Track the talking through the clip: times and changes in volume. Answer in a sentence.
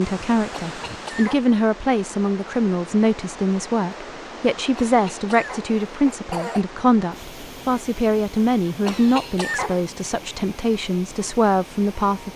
You can hear the talking from 0.0 to 12.3 s, at a steady volume.